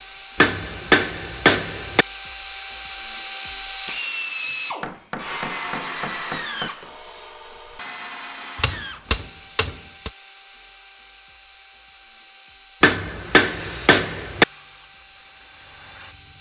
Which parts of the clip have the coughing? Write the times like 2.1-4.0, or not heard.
not heard.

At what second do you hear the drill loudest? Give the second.
4 s.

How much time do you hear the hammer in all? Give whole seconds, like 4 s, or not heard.
7 s.